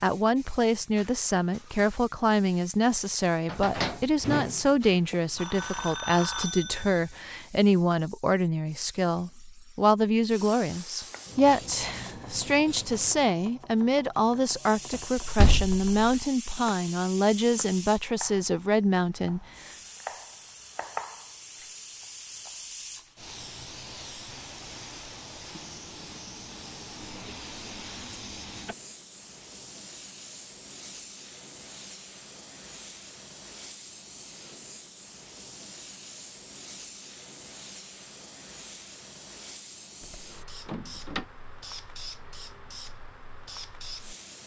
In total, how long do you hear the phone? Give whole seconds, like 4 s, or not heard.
2 s.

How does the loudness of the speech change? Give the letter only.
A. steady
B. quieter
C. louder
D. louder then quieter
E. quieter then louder
A.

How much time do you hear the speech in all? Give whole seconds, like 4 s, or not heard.
20 s.